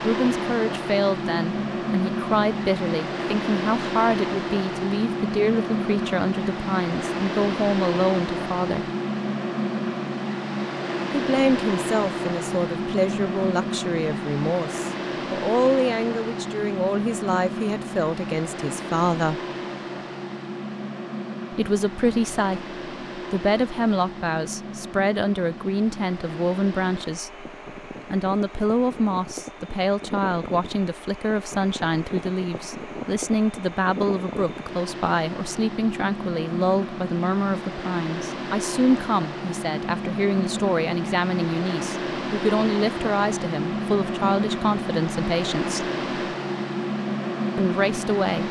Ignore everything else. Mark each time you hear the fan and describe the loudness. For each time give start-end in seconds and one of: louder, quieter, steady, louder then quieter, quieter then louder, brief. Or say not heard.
0.0-48.4 quieter then louder.